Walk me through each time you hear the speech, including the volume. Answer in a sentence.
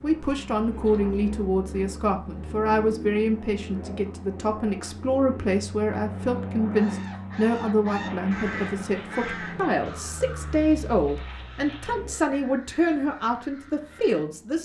The speech can be heard from 0.0 to 14.6 s, at a steady volume.